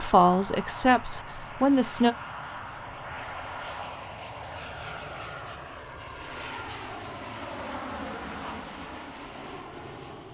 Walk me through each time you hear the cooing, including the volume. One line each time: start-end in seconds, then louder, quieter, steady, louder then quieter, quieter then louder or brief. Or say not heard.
not heard.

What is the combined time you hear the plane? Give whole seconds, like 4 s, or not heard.
10 s.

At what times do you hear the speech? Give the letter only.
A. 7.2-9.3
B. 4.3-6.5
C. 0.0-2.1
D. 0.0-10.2
C.